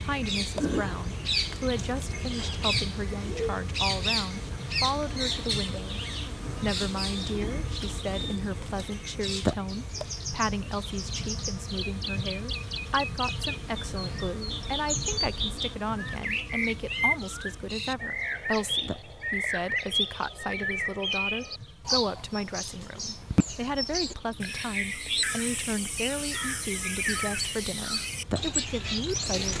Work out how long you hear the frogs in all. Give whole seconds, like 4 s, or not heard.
not heard.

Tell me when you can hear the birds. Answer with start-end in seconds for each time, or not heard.
0.0-29.5.